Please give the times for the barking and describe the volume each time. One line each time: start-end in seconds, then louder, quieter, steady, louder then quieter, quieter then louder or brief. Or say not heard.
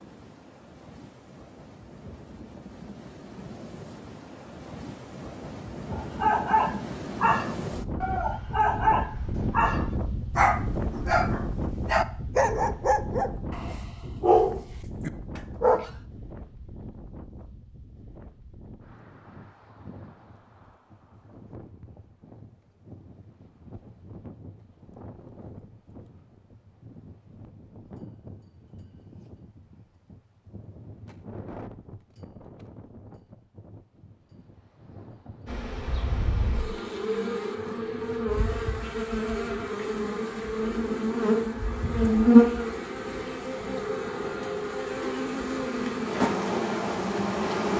5.9-15.9 steady.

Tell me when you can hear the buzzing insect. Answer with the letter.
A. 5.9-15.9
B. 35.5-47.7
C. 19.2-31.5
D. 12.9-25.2
B.